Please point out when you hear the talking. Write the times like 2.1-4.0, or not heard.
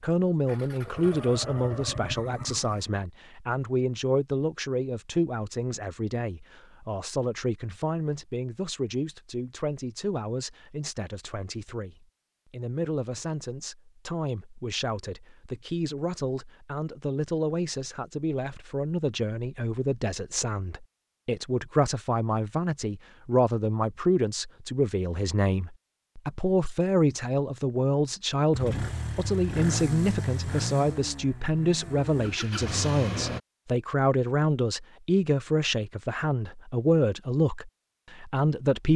0.0-38.9.